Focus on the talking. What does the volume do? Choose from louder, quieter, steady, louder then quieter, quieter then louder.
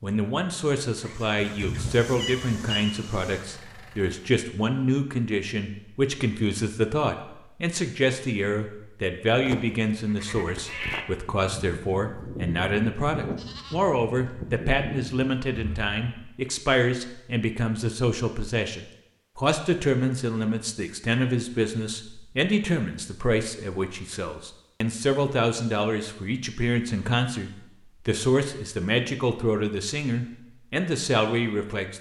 steady.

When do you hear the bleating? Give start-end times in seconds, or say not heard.
9.3-16.2.